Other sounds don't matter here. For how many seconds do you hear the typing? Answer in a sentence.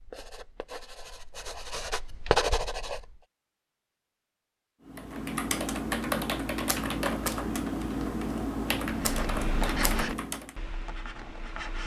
You can hear the typing for 6 seconds altogether.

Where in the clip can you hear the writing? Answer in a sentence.
You can hear the writing from 0.0 to 3.1 s and from 8.9 to 11.8 s.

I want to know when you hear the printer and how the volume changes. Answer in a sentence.
The printer can't be heard in this clip.